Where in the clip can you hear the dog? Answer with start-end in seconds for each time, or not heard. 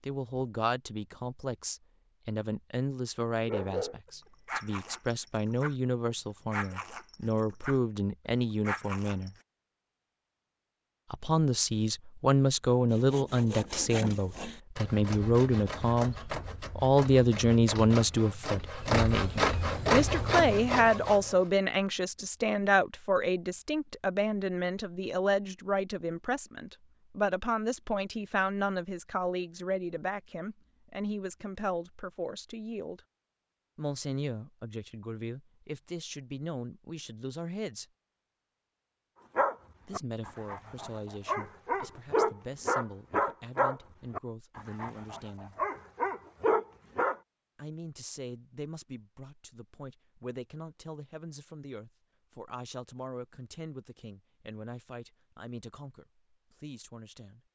3.5-9.4, 39.4-47.1.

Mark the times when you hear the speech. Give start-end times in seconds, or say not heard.
0.0-9.3, 11.1-33.0, 33.8-37.9, 39.9-45.6, 47.5-57.4.